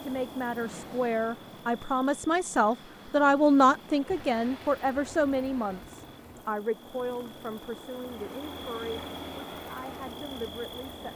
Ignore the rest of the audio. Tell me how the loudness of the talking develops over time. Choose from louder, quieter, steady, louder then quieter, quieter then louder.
louder then quieter.